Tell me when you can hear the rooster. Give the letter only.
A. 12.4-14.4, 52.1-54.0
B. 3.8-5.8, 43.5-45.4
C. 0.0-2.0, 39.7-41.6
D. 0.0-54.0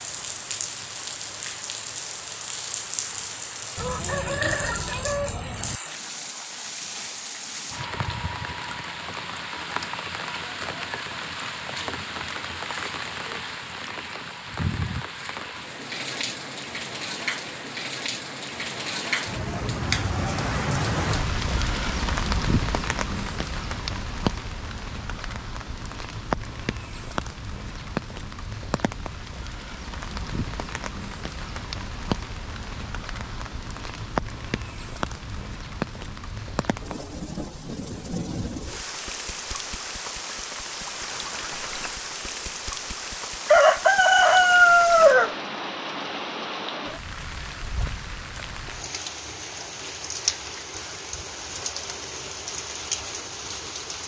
B.